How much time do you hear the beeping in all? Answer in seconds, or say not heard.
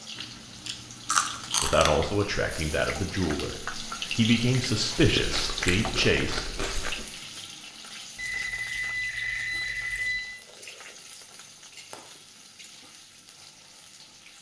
2 s.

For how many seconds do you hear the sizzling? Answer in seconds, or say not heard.
14 s.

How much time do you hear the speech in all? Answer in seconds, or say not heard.
5 s.